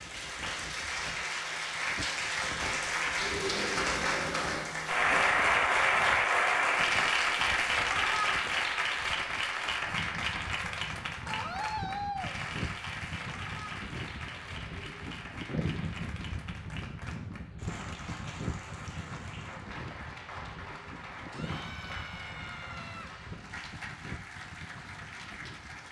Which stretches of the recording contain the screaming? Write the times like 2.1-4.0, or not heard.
3.2-4.7, 11.2-12.3, 21.3-23.1.